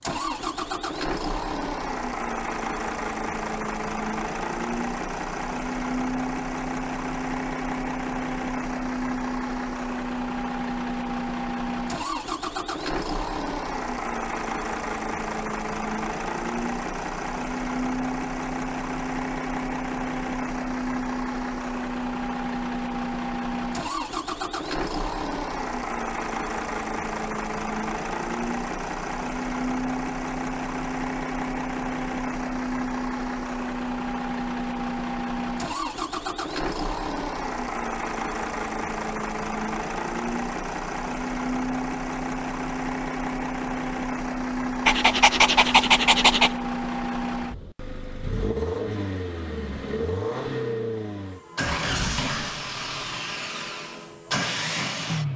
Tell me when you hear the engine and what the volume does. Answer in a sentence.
You can hear the engine from 0.0 to 55.3 s, at a steady volume.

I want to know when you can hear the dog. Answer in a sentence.
The dog can be heard from 44.9 to 46.5 s.